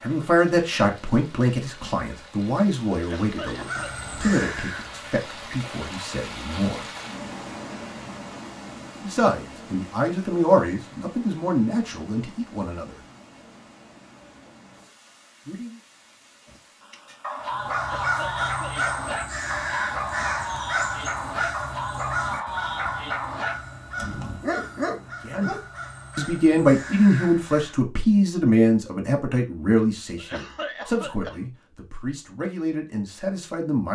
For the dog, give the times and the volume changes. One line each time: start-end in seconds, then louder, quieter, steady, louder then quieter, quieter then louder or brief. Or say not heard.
16.5-25.6 steady.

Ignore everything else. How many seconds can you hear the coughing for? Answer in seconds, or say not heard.
4 s.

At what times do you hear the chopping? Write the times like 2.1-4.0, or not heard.
not heard.